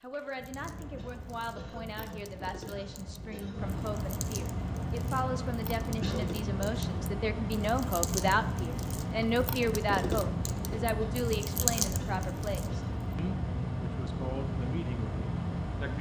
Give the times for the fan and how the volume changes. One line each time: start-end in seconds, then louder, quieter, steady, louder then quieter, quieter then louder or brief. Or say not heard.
0.0-15.9 louder.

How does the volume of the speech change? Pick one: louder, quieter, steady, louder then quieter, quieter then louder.
louder then quieter.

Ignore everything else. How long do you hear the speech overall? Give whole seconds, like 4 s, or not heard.
16 s.